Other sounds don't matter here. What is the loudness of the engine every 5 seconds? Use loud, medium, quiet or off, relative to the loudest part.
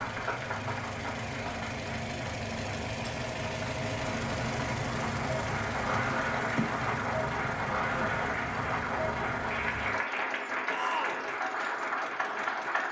loud, loud, medium.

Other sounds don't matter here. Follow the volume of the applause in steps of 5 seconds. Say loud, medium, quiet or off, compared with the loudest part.
medium, loud, loud.